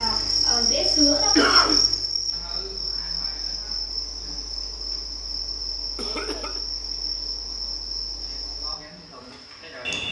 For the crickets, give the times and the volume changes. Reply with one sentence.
The crickets can be heard from 0.0 to 10.0 s, getting quieter.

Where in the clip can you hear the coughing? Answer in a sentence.
You can hear the coughing from 0.9 to 1.9 s and from 6.0 to 6.6 s.